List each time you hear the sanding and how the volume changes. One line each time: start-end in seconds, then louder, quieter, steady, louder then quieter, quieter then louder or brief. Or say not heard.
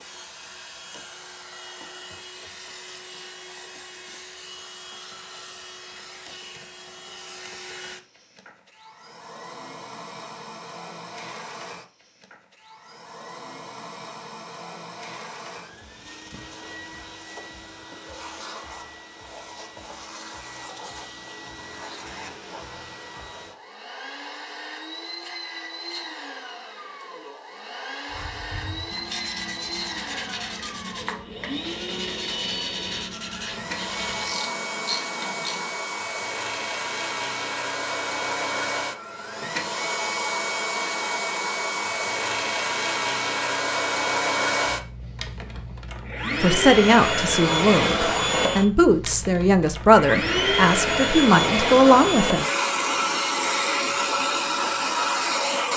28.1-34.5 steady.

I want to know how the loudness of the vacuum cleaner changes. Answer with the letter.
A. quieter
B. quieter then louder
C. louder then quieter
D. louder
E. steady
D.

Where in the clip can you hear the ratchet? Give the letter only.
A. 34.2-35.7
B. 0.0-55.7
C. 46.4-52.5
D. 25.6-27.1
A.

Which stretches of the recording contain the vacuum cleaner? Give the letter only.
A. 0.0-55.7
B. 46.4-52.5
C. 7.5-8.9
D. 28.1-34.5
A.